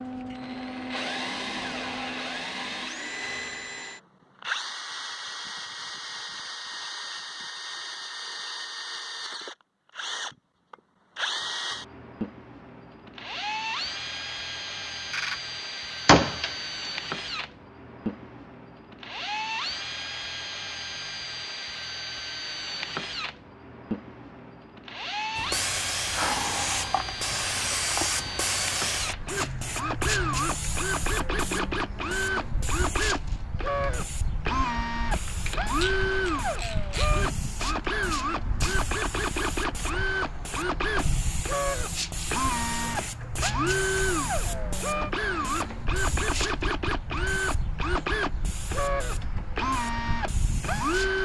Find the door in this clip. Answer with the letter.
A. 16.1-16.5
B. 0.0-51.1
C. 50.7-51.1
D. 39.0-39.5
A.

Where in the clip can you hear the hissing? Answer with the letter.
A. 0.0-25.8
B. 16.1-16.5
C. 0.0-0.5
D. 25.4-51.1
D.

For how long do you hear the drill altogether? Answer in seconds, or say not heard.
51 s.